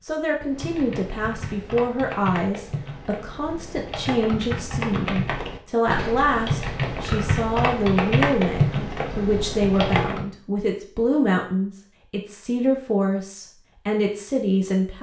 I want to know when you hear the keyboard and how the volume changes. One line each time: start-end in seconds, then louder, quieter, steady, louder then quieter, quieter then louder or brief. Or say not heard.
0.4-10.2 louder.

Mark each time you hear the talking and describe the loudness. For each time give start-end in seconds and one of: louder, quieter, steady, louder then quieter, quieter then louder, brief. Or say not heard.
0.0-14.9 steady.